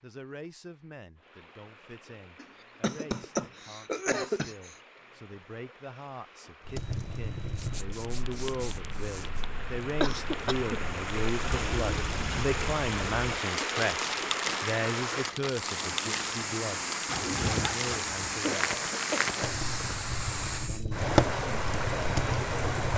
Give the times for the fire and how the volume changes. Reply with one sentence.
The fire can be heard from 6.7 to 22.9 s, getting louder.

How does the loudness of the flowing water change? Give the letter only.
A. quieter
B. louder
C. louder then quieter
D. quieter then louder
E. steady
B.